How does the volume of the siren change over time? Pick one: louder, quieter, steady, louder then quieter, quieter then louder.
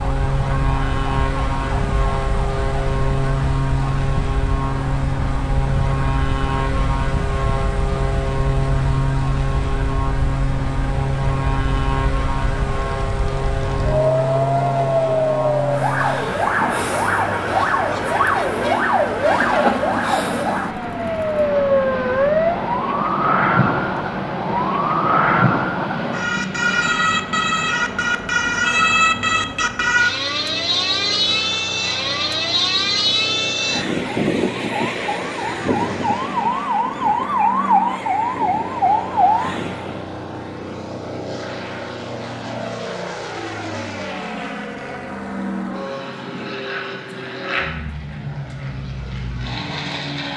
louder.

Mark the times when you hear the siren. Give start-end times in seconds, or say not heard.
0.0-40.0.